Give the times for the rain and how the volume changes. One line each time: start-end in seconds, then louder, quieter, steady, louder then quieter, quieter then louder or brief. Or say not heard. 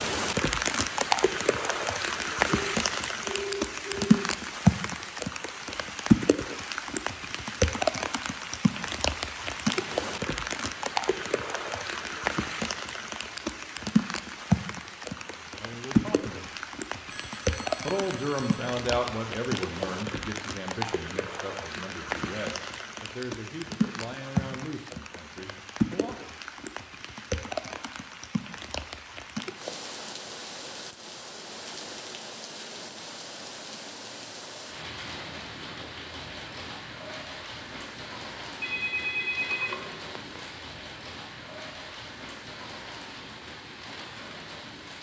0.0-44.9 quieter.